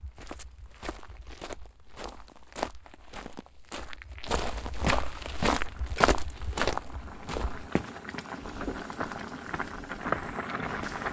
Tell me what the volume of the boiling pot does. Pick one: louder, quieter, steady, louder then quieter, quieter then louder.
louder.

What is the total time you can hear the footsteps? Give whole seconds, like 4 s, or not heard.
11 s.